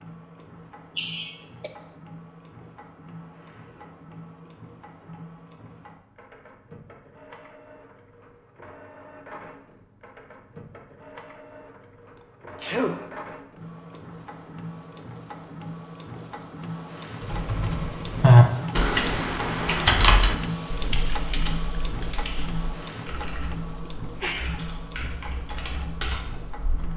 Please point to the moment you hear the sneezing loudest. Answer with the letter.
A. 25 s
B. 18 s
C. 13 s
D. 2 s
C.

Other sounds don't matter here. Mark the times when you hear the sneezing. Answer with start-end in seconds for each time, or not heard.
0.9-1.7, 12.6-13.1, 24.2-25.1.